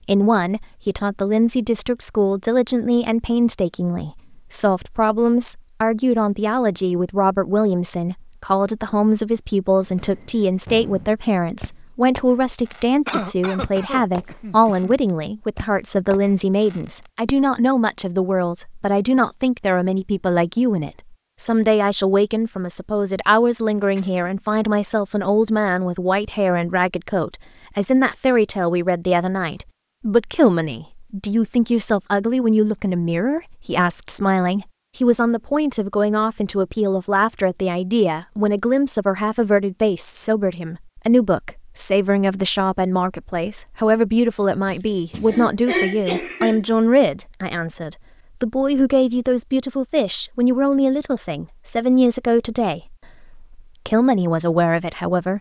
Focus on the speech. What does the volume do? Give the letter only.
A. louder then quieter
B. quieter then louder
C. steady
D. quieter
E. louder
C.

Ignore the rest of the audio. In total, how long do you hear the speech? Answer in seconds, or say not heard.
55 s.